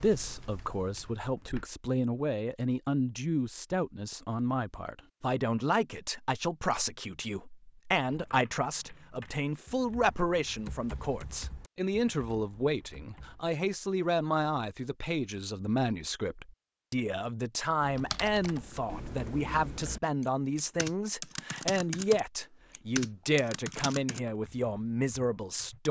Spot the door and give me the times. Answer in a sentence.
The door can't be heard in this clip.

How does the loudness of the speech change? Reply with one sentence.
The loudness of the speech stays about the same.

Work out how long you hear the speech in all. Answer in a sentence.
You can hear the speech for 26 seconds altogether.